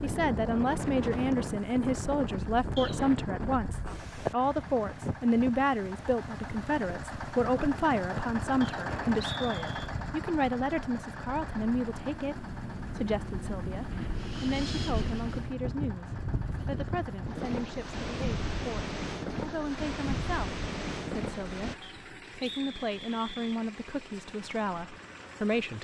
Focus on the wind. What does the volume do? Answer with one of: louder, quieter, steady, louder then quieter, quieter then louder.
quieter then louder.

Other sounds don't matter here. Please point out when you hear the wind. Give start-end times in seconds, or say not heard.
0.0-21.8.